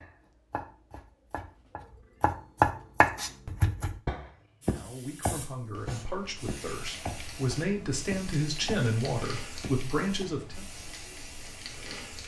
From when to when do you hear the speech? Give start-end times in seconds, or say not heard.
4.6-10.7.